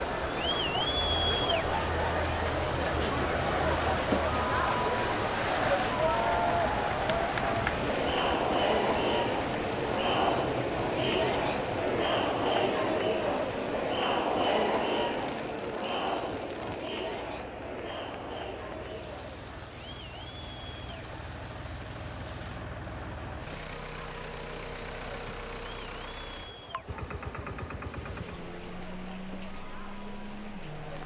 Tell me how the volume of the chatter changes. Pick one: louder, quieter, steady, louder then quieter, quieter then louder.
quieter.